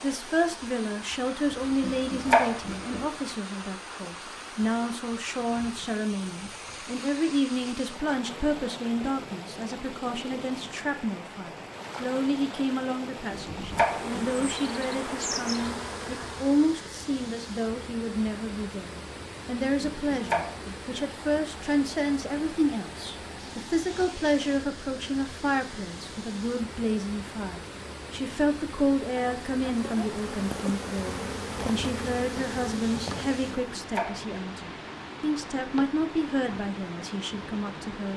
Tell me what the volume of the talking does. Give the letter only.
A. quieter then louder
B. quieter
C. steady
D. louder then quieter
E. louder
C.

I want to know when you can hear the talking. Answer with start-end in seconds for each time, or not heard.
0.0-38.1.